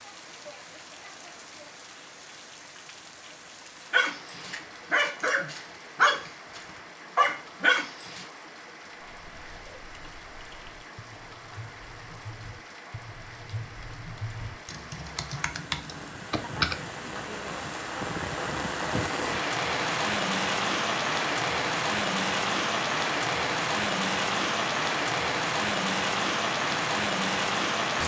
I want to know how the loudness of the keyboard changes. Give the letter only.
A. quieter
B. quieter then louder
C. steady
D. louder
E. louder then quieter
D.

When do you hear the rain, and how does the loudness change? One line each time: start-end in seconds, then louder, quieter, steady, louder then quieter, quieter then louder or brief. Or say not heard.
0.0-28.0 louder.